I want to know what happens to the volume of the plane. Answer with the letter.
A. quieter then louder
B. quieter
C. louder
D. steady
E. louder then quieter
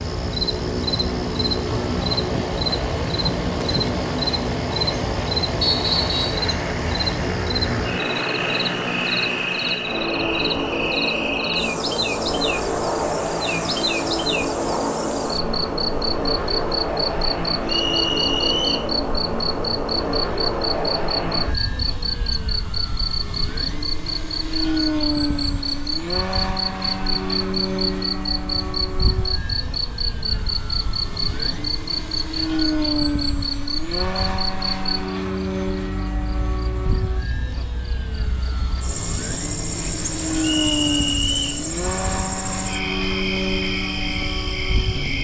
D.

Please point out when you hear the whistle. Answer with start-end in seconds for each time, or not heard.
5.6-6.5, 17.6-18.9, 40.4-41.6.